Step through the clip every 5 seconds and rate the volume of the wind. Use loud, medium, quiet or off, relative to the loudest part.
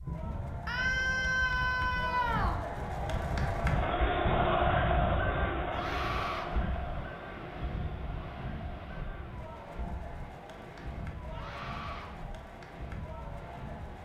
loud, loud, medium.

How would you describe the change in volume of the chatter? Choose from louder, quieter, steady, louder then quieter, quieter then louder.
louder then quieter.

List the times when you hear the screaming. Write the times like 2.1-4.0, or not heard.
0.7-2.6, 5.7-6.5, 11.3-12.1.